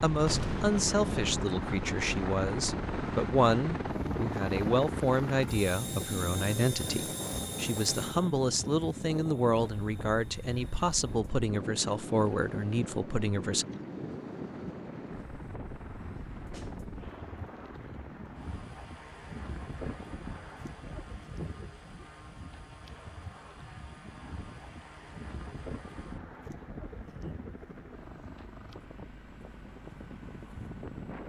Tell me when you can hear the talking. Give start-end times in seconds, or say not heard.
0.0-13.7.